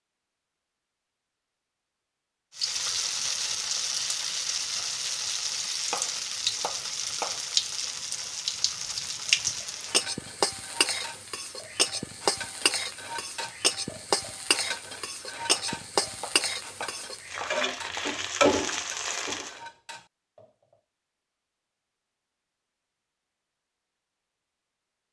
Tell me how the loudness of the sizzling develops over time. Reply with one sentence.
The volume of the sizzling stays about the same.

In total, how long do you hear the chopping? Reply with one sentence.
You can hear the chopping for 4 seconds altogether.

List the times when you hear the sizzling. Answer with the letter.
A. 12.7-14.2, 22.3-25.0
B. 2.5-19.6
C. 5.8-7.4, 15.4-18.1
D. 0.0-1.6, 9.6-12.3
B.